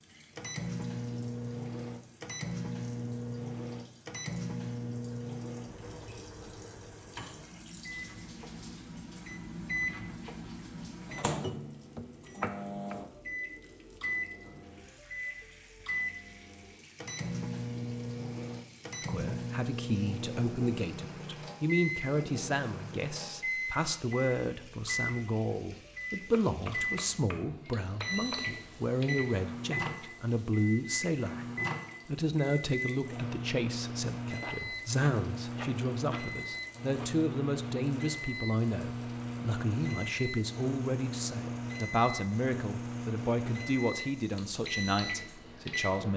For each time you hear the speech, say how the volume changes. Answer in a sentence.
You can hear the speech from 19.1 to 31.4 s, at a steady volume; and from 32.0 to 46.1 s, at a steady volume.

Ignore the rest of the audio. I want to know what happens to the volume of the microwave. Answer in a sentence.
The loudness of the microwave stays about the same.